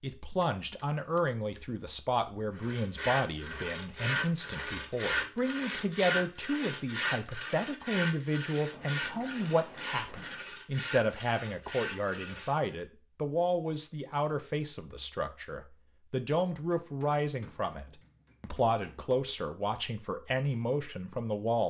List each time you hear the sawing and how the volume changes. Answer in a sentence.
You can hear the sawing from 2.5 to 12.8 s, getting quieter.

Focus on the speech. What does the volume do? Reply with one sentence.
The loudness of the speech stays about the same.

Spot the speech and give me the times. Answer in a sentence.
The speech can be heard from 0.0 to 21.6 s.